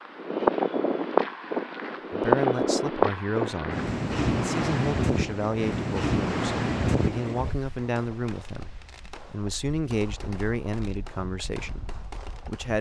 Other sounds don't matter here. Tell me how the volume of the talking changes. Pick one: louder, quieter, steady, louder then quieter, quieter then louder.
steady.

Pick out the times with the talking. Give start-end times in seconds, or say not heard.
2.1-12.7.